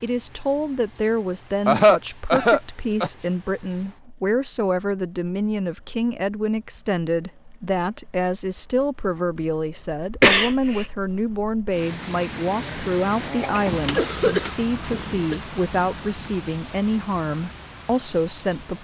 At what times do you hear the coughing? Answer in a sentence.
You can hear the coughing from 1.6 to 3.1 s, from 10.2 to 10.8 s and from 13.3 to 15.4 s.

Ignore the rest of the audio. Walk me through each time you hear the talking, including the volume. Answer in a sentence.
You can hear the talking from 0.0 to 18.7 s, at a steady volume.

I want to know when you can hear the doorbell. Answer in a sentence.
You can't hear the doorbell here.